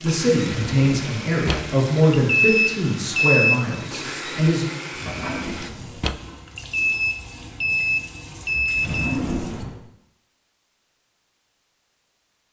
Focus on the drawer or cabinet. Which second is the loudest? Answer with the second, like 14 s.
9 s.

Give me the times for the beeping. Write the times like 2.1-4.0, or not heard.
2.2-3.6, 6.5-9.2.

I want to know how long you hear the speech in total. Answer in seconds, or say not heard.
5 s.